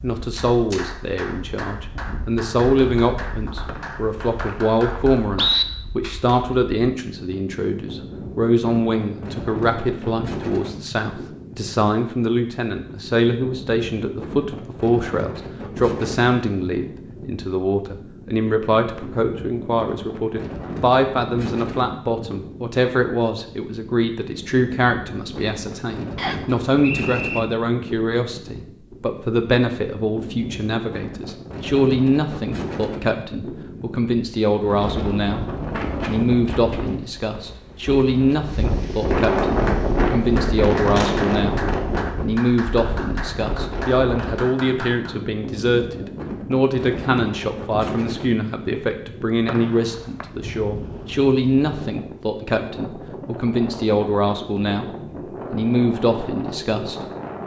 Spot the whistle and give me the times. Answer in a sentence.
You can hear the whistle from 3.6 to 5.7 s, from 26.1 to 27.4 s and from 49.5 to 50.2 s.